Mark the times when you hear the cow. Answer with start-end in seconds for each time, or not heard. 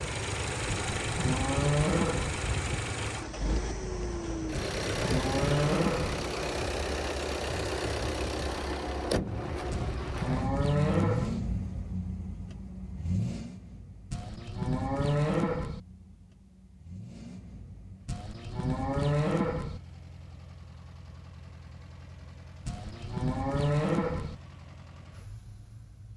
0.7-2.4, 4.5-6.2, 9.7-11.4, 14.1-15.8, 18.1-19.8, 22.6-24.4.